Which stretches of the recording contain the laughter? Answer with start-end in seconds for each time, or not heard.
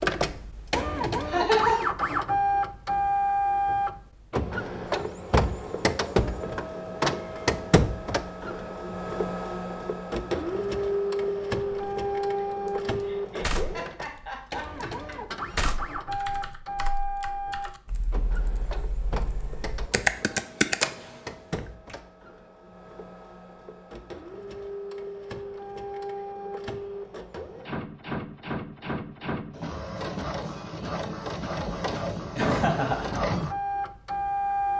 1.2-1.9, 13.0-15.2, 32.4-33.1.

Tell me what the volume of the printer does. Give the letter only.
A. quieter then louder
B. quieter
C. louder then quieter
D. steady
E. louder
A.